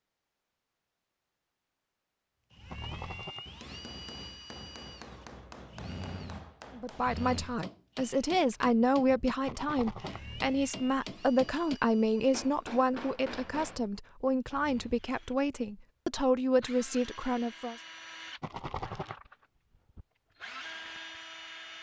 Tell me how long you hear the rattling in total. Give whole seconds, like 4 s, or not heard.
2 s.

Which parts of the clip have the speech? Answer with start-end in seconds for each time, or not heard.
6.8-17.8.